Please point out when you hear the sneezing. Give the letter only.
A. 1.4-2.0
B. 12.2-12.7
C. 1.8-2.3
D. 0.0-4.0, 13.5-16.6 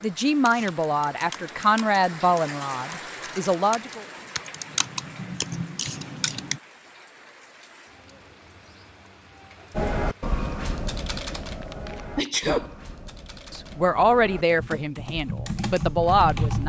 B.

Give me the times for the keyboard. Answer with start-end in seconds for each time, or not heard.
0.0-6.6, 9.8-16.6.